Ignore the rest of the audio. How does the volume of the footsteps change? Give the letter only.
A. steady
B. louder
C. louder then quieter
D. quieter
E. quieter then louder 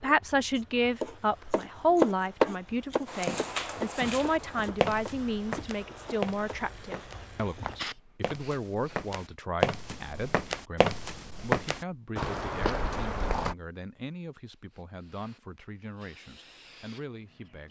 E.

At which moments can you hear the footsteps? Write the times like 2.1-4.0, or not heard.
3.0-13.6.